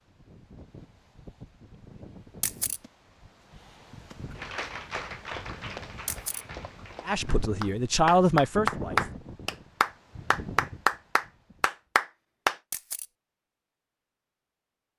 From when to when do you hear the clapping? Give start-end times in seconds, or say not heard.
4.3-12.6.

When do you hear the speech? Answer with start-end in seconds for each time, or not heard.
7.0-9.1.